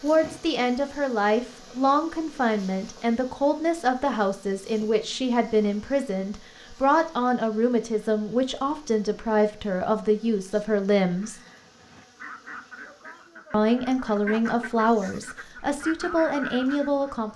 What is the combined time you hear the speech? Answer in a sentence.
You can hear the speech for 15 seconds altogether.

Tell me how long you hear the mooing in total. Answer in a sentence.
The mooing can't be heard in this clip.